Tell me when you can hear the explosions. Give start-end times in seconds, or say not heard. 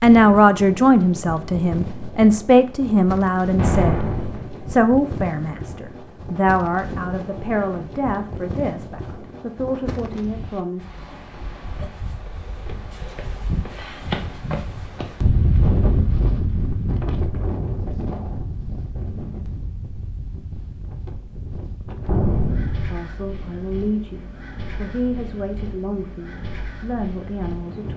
3.5-4.5, 22.1-22.9.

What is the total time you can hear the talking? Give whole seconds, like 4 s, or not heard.
16 s.